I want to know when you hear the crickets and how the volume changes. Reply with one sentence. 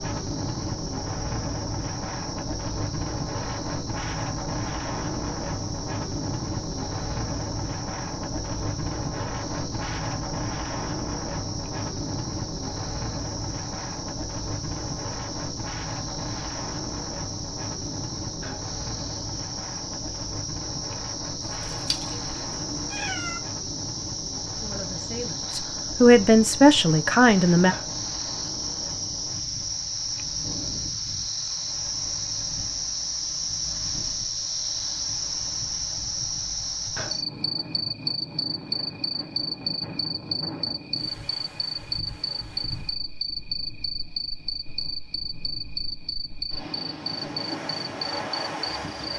You can hear the crickets from 0.0 to 49.1 s, getting louder.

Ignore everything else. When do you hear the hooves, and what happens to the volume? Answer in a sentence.
The hooves can't be heard in this clip.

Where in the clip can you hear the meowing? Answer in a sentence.
The meowing can be heard from 21.4 to 23.4 s.